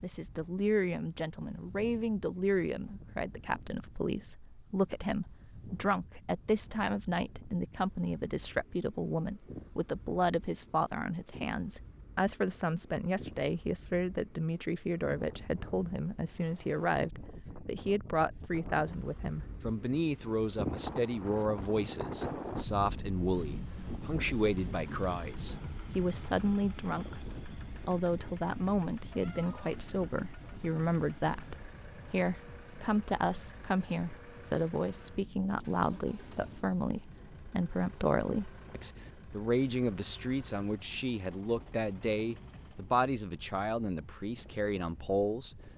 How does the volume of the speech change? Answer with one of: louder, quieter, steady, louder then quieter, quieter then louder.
steady.